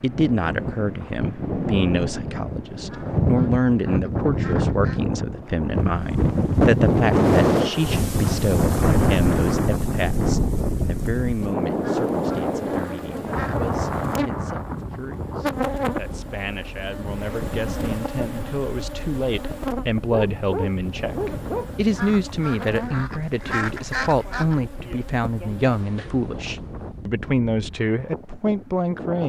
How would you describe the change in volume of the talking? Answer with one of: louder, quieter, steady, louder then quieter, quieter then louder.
quieter then louder.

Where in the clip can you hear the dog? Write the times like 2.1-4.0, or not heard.
20.1-21.7.